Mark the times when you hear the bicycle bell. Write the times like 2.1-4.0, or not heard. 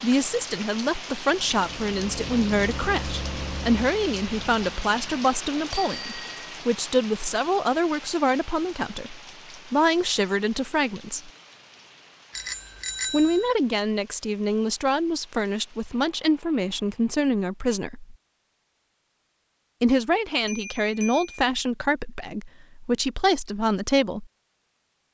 5.7-6.4, 12.3-13.5, 20.4-21.4.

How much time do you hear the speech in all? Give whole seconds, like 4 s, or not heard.
21 s.